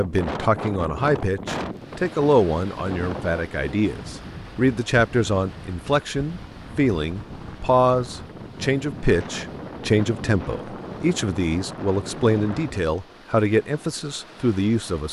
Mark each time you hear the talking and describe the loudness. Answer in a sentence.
You can hear the talking from 0.0 to 15.0 s, at a steady volume.